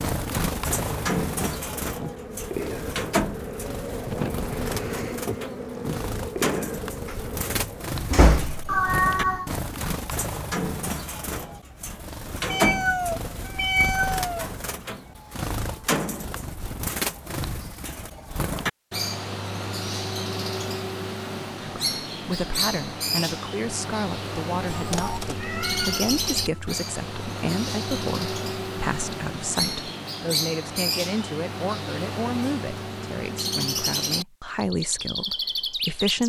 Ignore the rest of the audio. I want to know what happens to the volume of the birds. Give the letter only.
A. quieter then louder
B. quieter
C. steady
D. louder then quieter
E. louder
C.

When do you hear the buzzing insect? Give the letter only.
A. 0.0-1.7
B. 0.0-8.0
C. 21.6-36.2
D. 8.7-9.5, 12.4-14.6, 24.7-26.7
B.